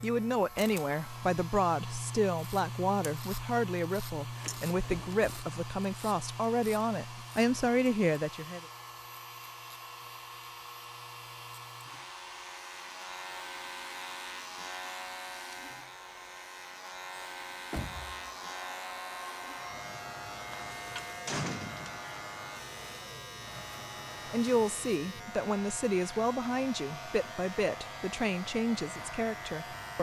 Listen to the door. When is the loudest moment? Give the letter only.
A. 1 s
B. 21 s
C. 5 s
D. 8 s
B.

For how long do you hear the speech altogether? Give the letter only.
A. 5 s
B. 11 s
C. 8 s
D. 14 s
D.